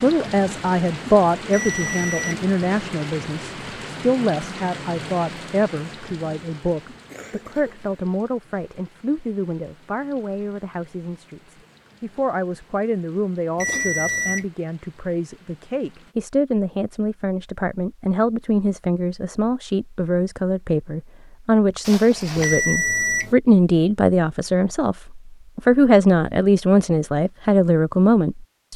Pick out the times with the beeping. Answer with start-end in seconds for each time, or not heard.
1.5-2.5, 13.6-14.4, 22.4-23.4.